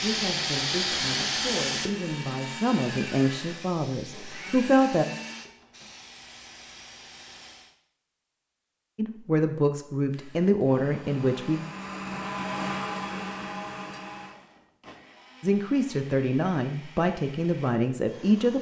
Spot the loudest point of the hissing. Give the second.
1 s.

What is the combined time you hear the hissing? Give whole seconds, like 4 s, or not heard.
8 s.